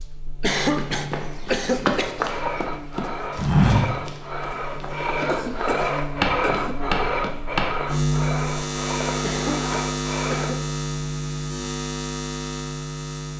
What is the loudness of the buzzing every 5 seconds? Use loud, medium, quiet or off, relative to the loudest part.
medium, loud, loud.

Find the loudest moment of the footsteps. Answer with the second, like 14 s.
4 s.